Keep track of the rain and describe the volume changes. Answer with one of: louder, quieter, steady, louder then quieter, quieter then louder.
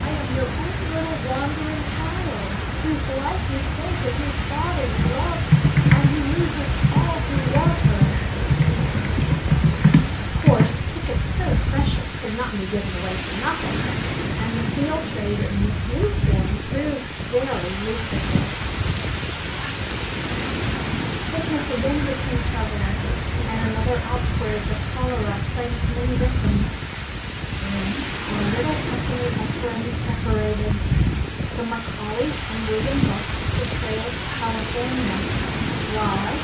steady.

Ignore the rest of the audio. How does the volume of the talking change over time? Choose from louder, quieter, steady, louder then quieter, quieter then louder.
steady.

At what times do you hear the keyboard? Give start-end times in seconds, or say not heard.
4.9-11.5.